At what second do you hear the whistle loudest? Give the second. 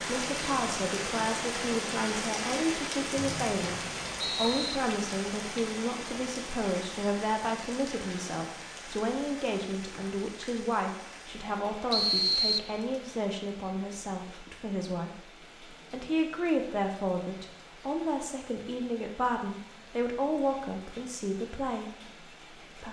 12 s.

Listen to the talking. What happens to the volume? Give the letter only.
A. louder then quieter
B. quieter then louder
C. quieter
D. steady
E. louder
D.